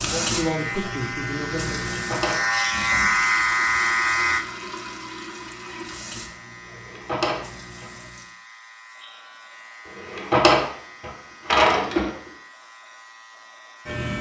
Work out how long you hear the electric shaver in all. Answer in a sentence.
You can hear the electric shaver for 14 seconds altogether.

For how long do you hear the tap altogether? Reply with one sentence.
The tap can be heard for 8 seconds in total.